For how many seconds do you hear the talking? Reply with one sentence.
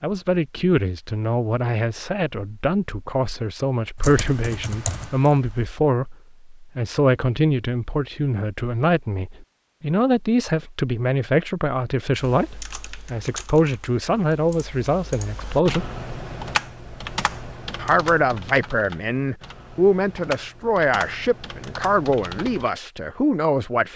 You can hear the talking for 22 seconds altogether.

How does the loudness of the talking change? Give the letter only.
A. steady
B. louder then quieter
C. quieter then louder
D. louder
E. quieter
A.